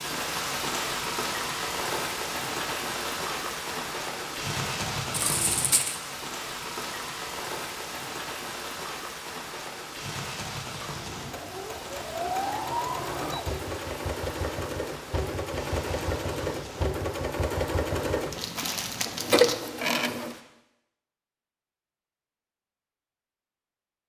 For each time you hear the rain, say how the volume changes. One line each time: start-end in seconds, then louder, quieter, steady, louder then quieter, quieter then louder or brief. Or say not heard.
0.0-20.4 quieter.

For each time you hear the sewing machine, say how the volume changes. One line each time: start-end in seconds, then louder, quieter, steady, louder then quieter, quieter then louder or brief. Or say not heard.
10.9-20.4 louder.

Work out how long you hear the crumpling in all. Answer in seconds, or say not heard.
2 s.